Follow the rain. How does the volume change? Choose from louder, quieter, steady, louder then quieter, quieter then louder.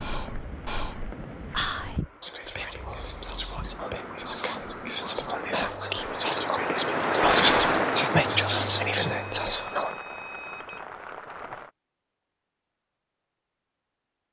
louder then quieter.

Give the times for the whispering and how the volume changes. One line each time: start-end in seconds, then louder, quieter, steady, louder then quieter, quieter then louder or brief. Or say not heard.
0.0-9.9 louder.